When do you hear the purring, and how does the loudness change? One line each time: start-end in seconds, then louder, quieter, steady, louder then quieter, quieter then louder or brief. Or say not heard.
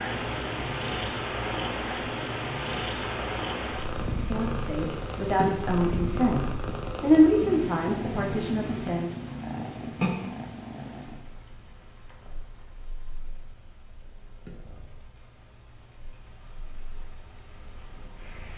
0.0-18.5 quieter.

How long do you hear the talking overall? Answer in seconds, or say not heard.
5 s.